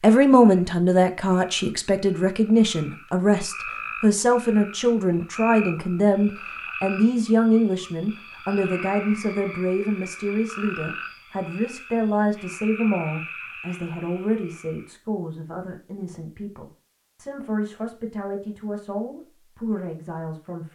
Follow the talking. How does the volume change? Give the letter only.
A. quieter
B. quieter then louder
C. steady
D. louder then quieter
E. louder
A.